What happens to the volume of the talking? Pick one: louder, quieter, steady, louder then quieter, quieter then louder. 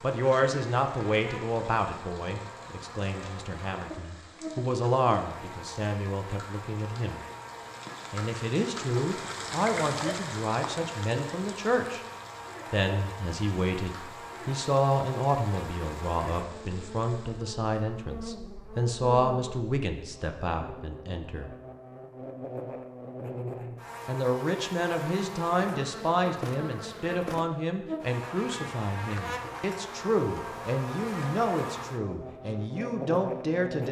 steady.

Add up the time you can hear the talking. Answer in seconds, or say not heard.
30 s.